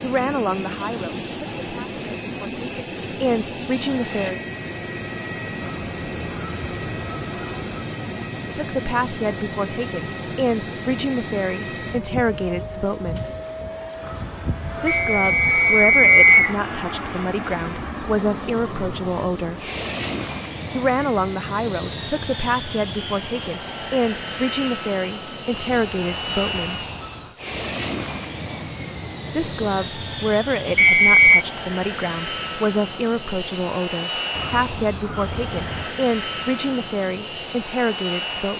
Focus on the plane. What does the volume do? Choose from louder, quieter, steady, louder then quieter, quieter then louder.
steady.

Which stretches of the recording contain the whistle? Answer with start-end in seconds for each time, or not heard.
14.8-16.6, 30.8-31.4.